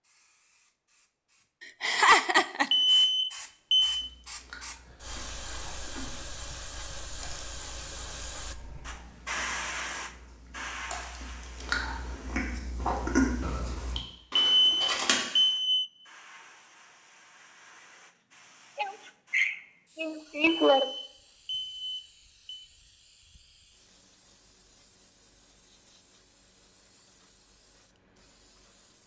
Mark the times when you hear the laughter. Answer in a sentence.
You can hear the laughter from 1.6 to 2.7 s and from 18.8 to 20.9 s.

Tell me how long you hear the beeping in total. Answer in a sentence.
You can hear the beeping for 5 seconds altogether.